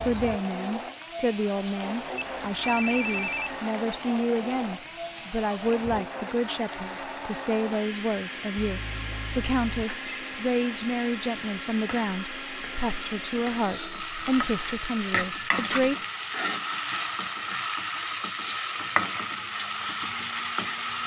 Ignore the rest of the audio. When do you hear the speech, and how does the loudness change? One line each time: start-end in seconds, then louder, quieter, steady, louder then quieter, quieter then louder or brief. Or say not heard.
0.0-15.9 steady.